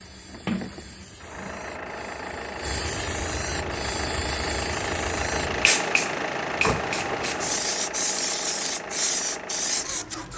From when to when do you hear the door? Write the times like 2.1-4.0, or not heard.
0.5-1.6, 6.5-7.7.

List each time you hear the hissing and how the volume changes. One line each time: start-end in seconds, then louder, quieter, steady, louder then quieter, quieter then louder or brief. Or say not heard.
0.0-10.3 louder.